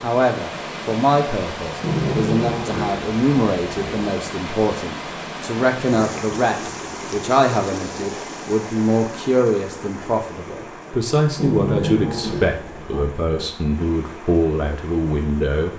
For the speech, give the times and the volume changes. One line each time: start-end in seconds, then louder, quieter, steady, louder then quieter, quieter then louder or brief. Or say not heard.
0.0-15.7 steady.